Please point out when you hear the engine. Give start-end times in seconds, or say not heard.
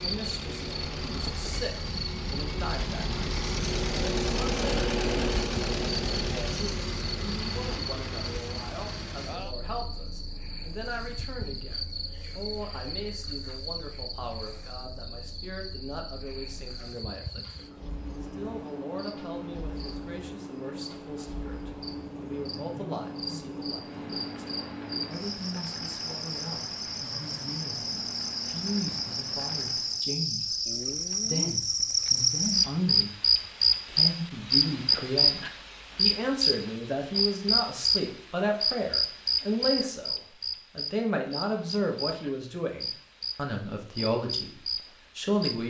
0.0-30.1.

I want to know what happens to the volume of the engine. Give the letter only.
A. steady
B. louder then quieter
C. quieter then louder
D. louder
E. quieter
C.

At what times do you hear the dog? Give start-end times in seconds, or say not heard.
not heard.